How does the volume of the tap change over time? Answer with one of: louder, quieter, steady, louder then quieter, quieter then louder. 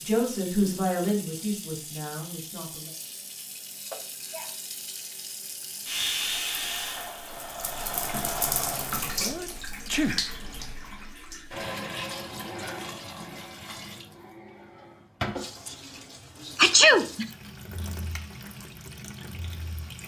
louder then quieter.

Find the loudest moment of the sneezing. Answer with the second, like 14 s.
17 s.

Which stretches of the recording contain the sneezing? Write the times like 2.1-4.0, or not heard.
3.9-4.5, 9.2-10.2, 16.6-17.3.